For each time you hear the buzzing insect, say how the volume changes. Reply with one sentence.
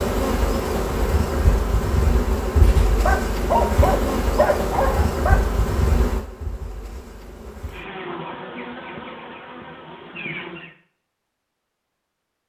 The buzzing insect can be heard from 0.0 to 10.8 s, getting quieter.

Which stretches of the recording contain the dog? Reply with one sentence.
You can hear the dog from 2.6 to 5.4 s.